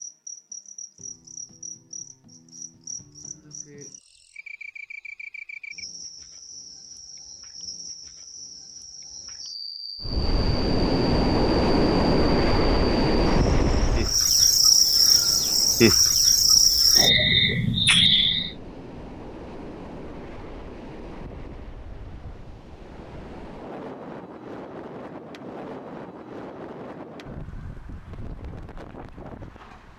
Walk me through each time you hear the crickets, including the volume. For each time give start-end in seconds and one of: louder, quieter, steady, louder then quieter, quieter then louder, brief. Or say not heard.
0.0-18.6 louder.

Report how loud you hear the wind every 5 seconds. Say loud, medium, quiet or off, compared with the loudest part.
off, off, loud, quiet, quiet, quiet.